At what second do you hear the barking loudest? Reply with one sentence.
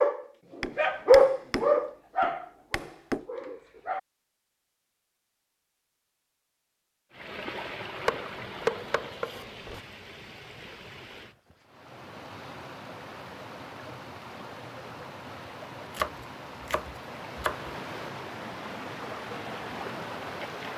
The volume of the barking peaks at 1 second.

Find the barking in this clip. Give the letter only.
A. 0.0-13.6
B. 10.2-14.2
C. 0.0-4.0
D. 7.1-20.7
C.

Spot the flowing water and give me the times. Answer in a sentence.
The flowing water can be heard from 7.1 to 20.7 s.